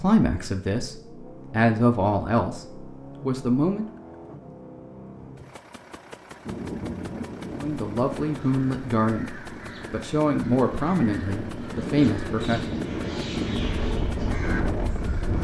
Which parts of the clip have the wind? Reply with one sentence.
You can hear the wind from 6.5 to 15.3 s.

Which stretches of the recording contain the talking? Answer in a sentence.
The talking can be heard from 0.0 to 3.9 s and from 7.5 to 12.6 s.